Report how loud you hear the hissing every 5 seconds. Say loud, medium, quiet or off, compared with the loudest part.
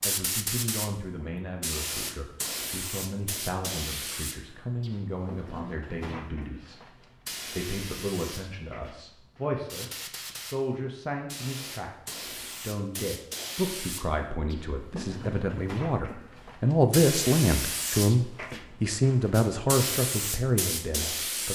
loud, medium, medium, loud, loud.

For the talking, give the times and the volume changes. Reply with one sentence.
The talking can be heard from 0.0 to 21.5 s, getting louder.